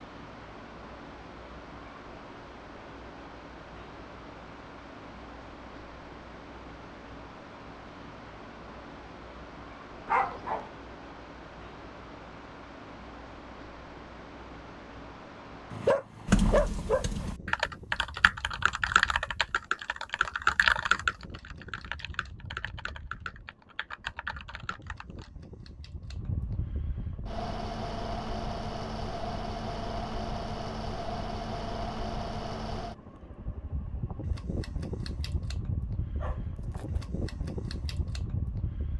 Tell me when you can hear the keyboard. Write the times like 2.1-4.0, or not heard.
16.2-25.3.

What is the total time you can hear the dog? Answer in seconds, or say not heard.
3 s.